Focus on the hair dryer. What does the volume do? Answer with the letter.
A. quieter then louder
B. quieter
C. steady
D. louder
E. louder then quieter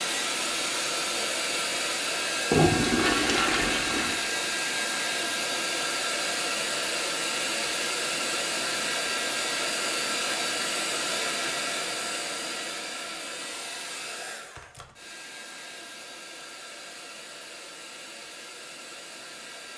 B.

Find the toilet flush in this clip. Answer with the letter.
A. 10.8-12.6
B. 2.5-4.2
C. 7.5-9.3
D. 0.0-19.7
B.